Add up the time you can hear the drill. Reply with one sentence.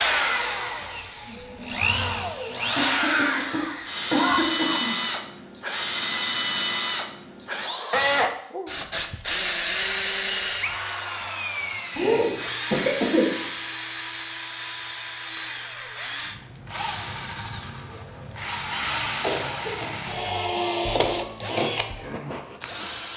You can hear the drill for 23 seconds altogether.